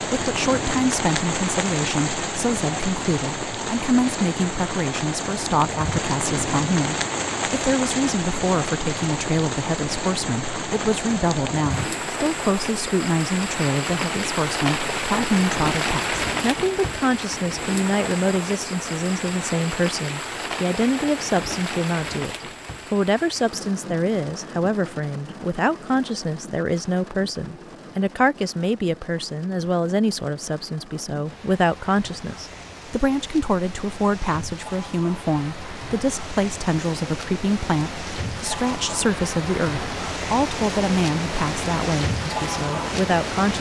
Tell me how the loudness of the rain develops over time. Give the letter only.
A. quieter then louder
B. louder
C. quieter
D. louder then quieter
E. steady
A.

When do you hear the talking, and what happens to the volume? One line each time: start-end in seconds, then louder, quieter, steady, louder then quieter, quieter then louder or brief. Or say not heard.
0.1-43.5 steady.